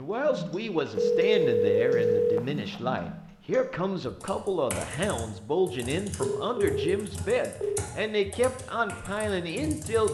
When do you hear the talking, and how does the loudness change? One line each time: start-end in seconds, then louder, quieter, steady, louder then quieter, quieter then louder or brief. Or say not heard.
0.0-10.1 steady.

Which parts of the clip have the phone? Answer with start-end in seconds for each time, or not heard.
0.9-2.8, 6.2-7.8.